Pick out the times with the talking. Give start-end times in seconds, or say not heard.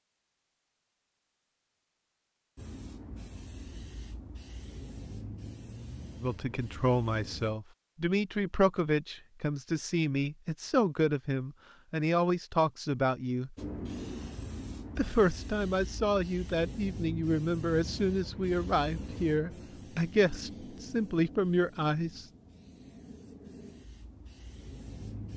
6.2-13.6, 14.9-22.2.